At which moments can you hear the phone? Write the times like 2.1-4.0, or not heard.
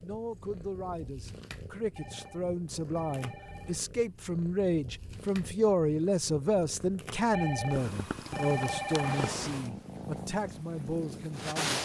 1.9-3.8, 7.3-9.3.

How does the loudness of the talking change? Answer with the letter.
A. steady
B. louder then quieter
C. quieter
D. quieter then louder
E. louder
B.